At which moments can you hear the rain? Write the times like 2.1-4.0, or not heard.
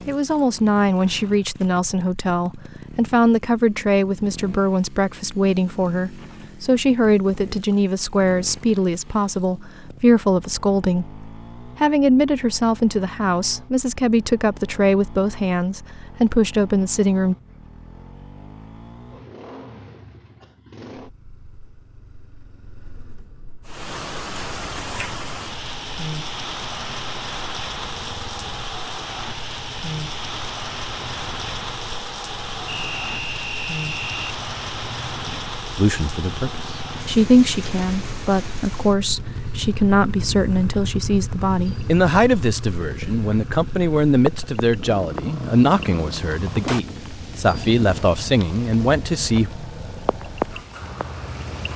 23.6-51.7.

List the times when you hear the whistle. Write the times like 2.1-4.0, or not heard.
32.6-34.4.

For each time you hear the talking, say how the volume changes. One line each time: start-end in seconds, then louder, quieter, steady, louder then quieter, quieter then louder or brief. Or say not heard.
0.1-17.4 steady
35.8-49.5 steady.